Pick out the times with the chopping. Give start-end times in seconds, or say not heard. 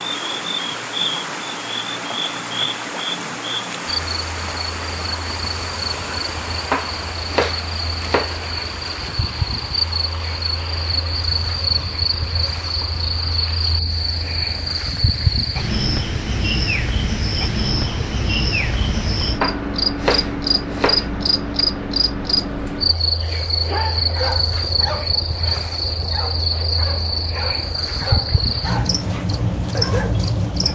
6.7-8.3, 19.4-21.1.